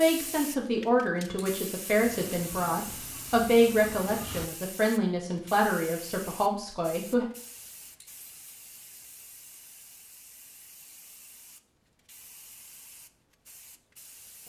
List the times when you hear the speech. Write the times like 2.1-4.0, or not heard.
0.0-7.2.